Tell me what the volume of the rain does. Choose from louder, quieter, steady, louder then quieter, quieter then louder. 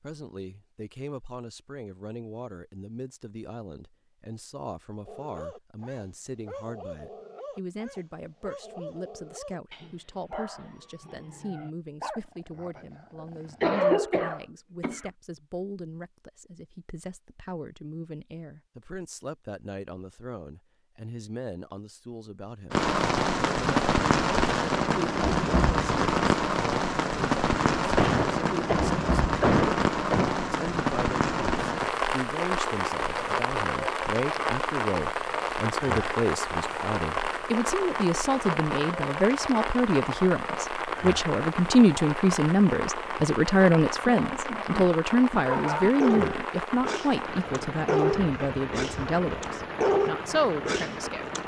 quieter.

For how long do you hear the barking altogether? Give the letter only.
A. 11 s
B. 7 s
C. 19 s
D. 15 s
D.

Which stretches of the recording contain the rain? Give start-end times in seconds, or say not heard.
22.7-51.4.